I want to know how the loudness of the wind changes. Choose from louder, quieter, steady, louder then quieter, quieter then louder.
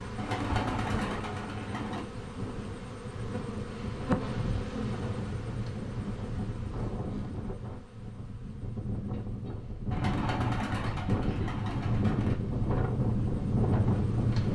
louder.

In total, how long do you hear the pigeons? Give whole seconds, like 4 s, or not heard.
4 s.